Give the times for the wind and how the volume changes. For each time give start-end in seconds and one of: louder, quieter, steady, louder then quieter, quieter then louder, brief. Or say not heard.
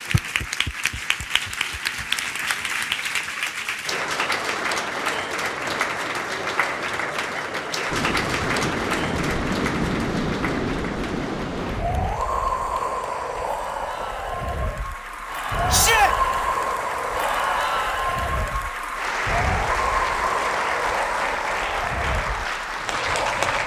7.8-23.6 steady.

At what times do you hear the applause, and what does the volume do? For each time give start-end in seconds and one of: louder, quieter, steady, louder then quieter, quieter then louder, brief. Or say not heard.
0.0-23.6 quieter then louder.